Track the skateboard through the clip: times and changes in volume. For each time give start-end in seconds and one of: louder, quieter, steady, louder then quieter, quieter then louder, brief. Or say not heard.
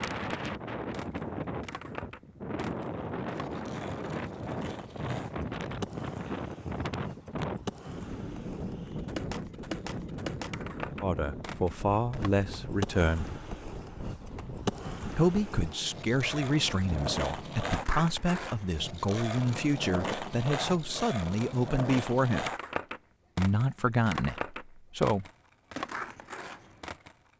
0.0-27.1 louder.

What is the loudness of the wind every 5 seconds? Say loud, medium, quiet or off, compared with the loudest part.
loud, loud, medium, medium, off, off.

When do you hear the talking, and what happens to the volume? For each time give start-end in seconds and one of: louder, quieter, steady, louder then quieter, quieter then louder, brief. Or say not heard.
11.0-13.3 brief
15.2-22.5 steady
23.4-25.2 brief.